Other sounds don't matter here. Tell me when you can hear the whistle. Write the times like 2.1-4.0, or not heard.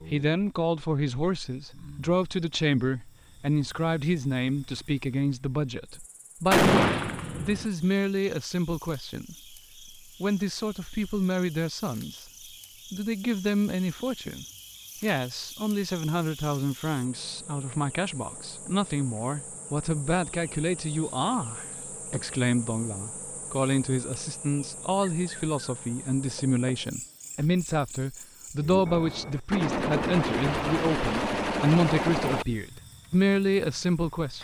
not heard.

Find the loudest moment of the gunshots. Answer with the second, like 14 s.
7 s.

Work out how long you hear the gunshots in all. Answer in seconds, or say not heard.
5 s.